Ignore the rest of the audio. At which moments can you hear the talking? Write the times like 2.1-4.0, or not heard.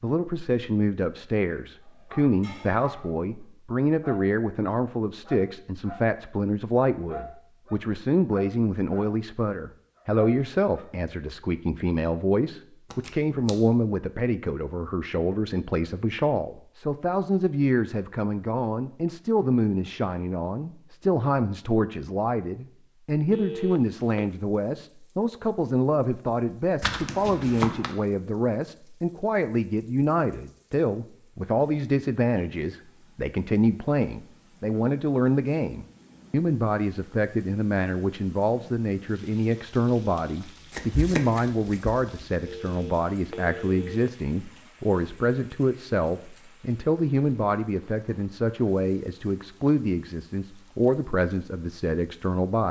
0.0-52.6.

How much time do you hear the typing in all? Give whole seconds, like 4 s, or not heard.
not heard.